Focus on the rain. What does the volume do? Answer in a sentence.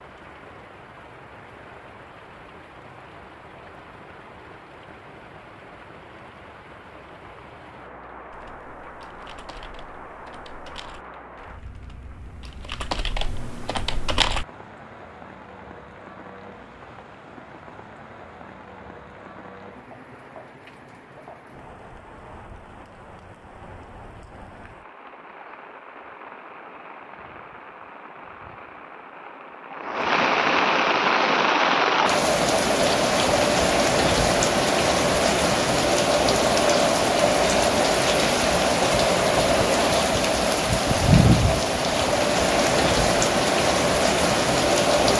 The loudness of the rain goes up.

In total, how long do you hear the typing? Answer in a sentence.
The typing can be heard for 6 seconds in total.